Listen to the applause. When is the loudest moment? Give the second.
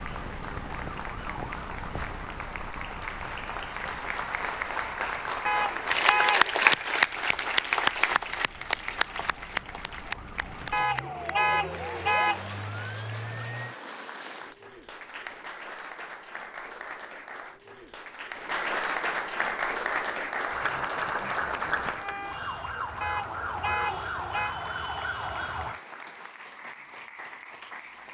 7 s.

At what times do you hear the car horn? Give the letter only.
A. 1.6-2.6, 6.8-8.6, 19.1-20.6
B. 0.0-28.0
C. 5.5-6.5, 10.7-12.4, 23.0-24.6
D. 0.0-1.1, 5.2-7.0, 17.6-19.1
C.